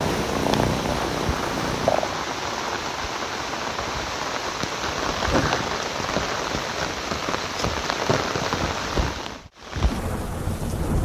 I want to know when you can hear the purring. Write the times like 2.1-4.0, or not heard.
0.0-2.2.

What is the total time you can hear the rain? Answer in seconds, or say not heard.
11 s.